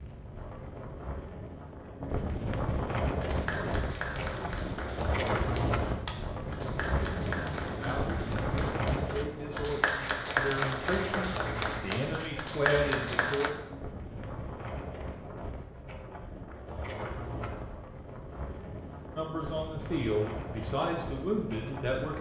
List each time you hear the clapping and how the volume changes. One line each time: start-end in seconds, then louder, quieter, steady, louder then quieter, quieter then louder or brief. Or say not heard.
3.1-13.5 louder.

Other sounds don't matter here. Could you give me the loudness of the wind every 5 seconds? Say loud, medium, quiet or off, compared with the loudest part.
loud, loud, medium, medium, medium.